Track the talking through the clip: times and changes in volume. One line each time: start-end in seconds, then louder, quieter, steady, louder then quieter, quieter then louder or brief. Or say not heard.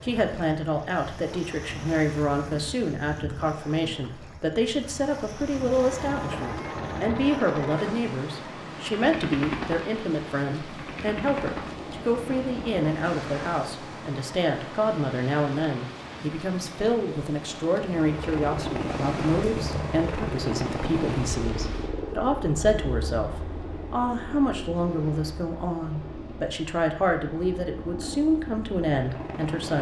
0.0-29.7 steady.